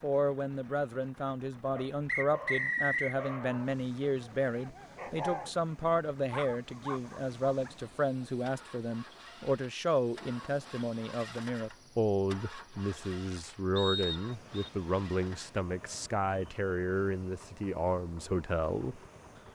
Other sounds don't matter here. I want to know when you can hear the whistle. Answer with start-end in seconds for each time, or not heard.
2.0-3.1, 13.8-14.7.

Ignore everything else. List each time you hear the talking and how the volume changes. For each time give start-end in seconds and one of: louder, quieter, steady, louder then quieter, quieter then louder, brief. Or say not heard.
0.0-19.0 steady.